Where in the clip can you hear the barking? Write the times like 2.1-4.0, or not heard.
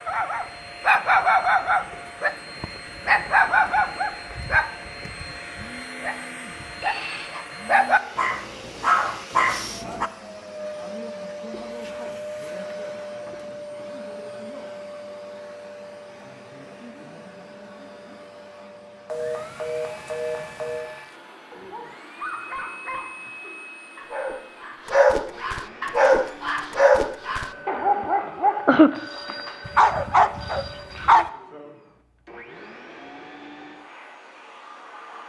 0.1-10.1, 21.5-31.3.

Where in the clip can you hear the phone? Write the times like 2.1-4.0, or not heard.
6.8-7.3, 19.1-20.9, 28.9-31.2.